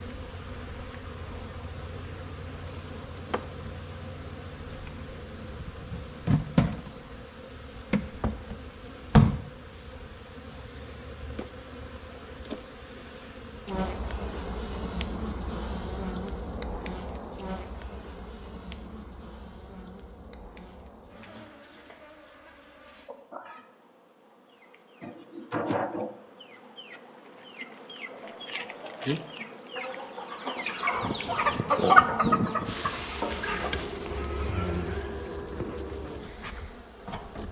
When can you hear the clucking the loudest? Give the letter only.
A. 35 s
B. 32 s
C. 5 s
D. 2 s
B.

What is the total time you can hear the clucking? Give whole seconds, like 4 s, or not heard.
7 s.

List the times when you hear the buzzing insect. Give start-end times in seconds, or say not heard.
0.0-37.4.